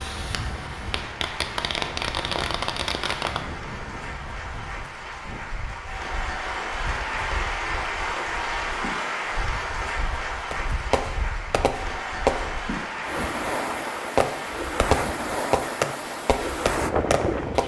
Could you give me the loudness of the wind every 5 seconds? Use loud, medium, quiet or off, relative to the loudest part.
quiet, quiet, medium, loud.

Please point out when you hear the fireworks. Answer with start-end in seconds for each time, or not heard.
0.0-3.5, 10.5-12.5, 14.2-17.6.